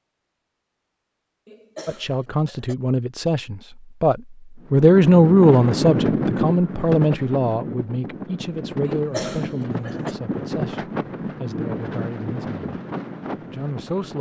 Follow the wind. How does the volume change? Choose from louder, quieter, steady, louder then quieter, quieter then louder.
quieter.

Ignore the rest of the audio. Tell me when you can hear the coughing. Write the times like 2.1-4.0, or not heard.
1.4-2.8, 8.9-10.2.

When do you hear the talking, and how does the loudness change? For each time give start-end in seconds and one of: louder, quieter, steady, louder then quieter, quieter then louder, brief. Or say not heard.
1.9-12.6 louder then quieter
13.5-14.1 brief.